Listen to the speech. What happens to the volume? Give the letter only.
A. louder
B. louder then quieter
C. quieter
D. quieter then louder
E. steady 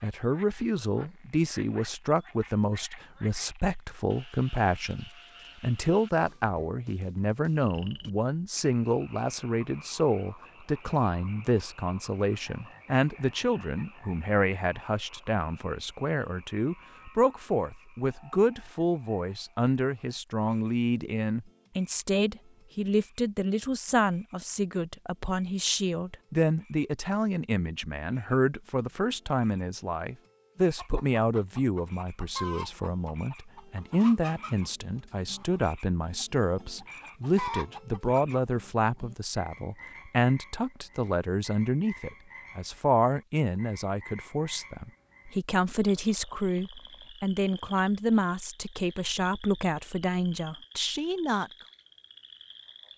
E.